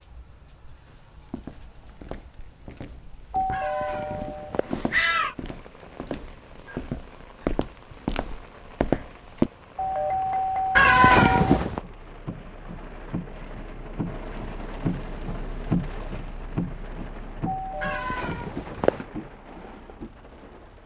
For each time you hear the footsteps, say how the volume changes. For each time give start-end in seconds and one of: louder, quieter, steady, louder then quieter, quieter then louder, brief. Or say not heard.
0.8-9.5 louder.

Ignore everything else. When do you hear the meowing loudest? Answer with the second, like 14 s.
11 s.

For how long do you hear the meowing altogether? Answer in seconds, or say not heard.
4 s.